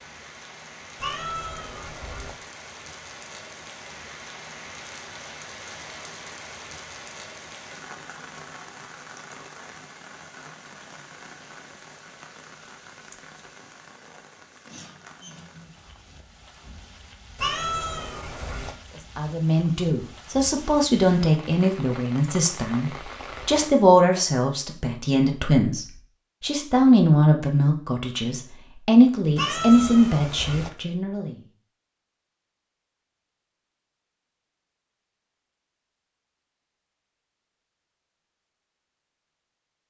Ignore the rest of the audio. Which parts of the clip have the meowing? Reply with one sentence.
The meowing can be heard from 0.9 to 2.4 s, from 17.4 to 18.8 s and from 29.4 to 30.7 s.